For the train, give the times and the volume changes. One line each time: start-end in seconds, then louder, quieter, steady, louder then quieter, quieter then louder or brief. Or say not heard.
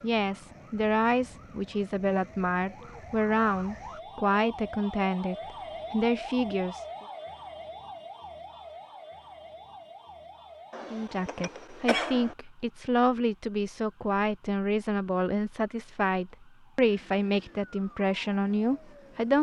not heard.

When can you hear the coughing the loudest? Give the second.
12 s.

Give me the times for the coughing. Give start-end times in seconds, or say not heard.
10.7-12.3.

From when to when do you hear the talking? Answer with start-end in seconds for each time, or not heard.
0.0-6.8, 10.9-19.3.